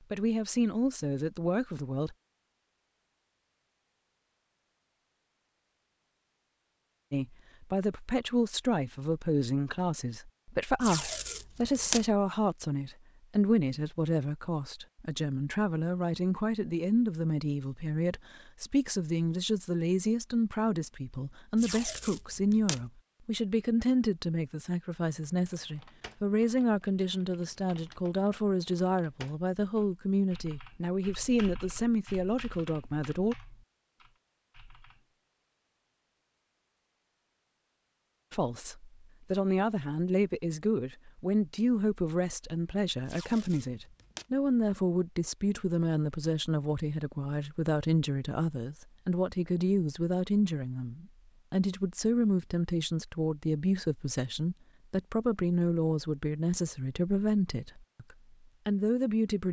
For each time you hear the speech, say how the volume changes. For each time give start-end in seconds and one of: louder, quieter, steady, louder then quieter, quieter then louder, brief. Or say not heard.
0.1-2.1 brief
7.1-33.4 steady
38.3-59.4 steady.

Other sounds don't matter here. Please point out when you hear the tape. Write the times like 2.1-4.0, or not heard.
10.8-12.1, 21.6-22.9, 43.0-44.2.